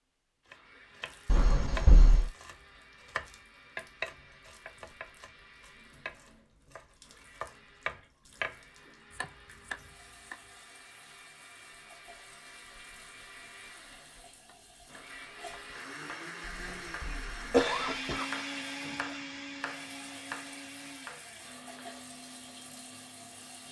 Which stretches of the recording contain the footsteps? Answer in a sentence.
You can't hear the footsteps here.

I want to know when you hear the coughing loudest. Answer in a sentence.
The loudest moment of the coughing is at 18 seconds.